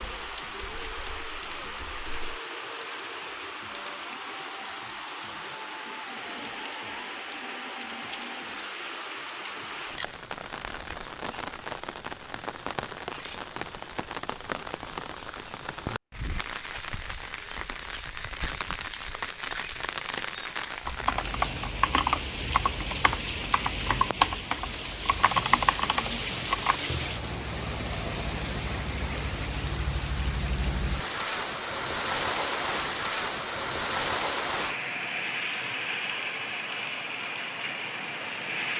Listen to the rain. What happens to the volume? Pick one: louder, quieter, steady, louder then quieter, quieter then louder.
louder.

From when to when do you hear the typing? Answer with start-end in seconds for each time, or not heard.
0.1-2.4, 20.9-26.8.